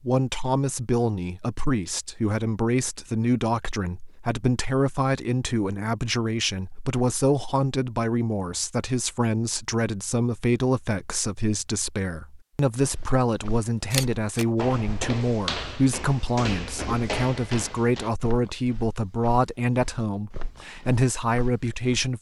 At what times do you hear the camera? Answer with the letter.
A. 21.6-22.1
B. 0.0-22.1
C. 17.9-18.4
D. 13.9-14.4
D.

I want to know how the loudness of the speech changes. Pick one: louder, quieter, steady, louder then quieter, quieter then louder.
steady.